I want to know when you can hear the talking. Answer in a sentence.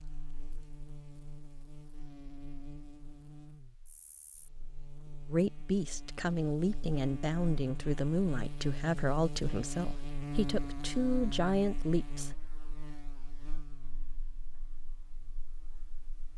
The talking can be heard from 5.3 to 12.4 s.